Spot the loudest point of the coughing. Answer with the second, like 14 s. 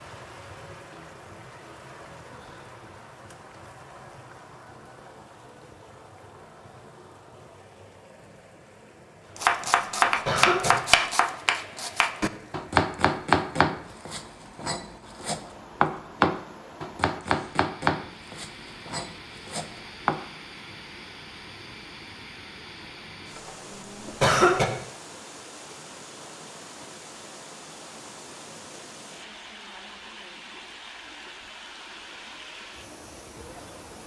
24 s.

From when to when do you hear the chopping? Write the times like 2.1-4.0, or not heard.
9.3-20.2.